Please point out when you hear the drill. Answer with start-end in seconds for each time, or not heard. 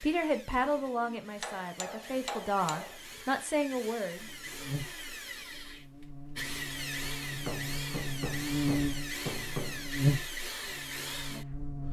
0.0-11.8.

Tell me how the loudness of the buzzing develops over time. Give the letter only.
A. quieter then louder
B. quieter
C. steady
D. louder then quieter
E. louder
E.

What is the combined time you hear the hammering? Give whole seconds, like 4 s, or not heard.
4 s.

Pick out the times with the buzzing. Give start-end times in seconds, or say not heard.
4.2-11.8.